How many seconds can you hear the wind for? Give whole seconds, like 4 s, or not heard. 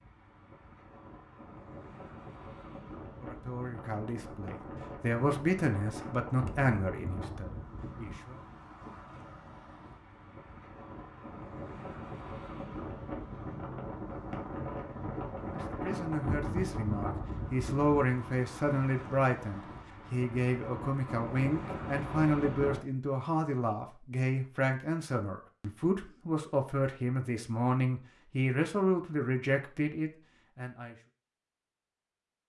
23 s.